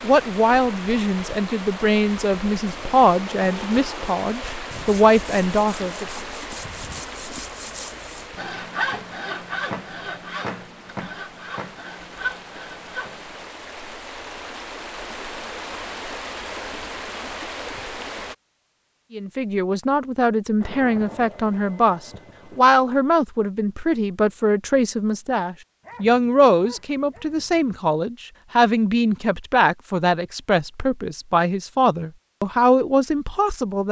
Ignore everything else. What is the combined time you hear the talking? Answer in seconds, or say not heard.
21 s.